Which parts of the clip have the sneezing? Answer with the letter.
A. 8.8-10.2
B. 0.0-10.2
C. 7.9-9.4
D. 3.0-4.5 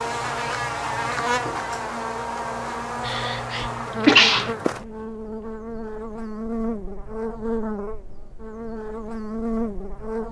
D.